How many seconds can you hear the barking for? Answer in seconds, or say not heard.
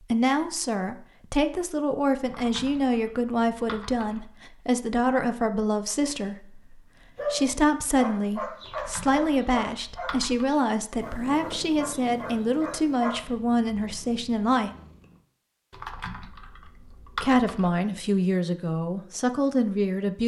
6 s.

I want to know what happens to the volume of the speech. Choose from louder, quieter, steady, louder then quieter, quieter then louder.
steady.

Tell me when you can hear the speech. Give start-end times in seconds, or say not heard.
0.0-14.7, 17.2-20.2.